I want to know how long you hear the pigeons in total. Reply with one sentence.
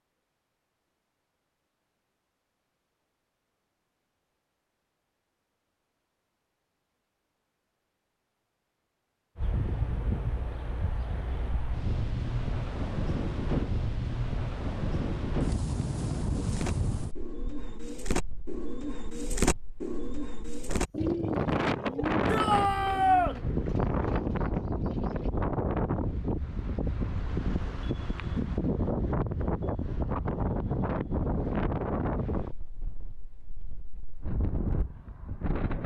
You can hear the pigeons for 9 seconds altogether.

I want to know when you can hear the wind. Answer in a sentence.
You can hear the wind from 9.3 to 35.8 s.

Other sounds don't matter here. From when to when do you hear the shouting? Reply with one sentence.
The shouting can be heard from 22.2 to 23.4 s.